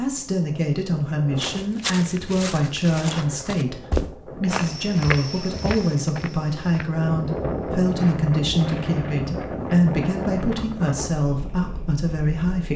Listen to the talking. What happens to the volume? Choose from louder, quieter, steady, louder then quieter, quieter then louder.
steady.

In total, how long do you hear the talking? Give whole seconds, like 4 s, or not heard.
13 s.